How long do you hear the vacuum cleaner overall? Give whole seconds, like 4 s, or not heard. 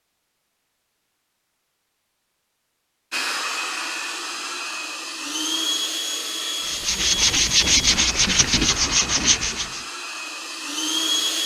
8 s.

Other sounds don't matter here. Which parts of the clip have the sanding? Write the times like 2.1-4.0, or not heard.
6.6-9.8.